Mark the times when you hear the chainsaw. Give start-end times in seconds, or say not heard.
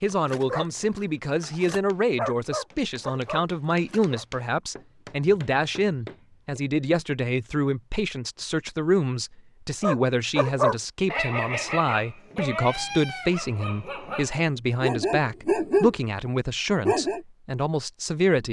not heard.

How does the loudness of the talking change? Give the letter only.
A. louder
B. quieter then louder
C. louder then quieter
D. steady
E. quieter
D.